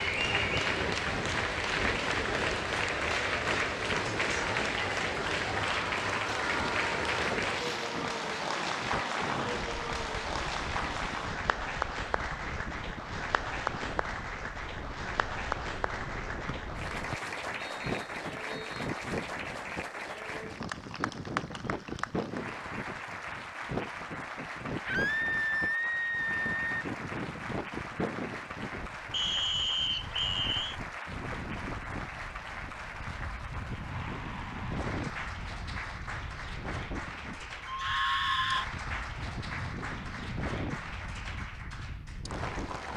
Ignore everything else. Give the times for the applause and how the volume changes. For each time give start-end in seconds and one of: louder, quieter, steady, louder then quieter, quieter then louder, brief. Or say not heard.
0.0-42.9 quieter.